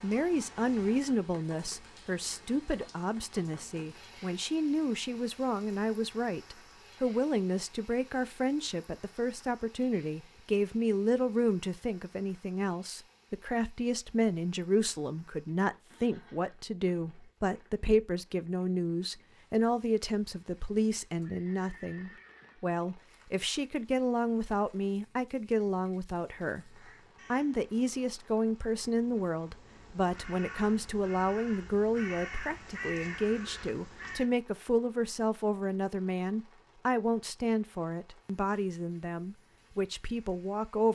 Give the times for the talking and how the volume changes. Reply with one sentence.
You can hear the talking from 0.0 to 40.9 s, at a steady volume.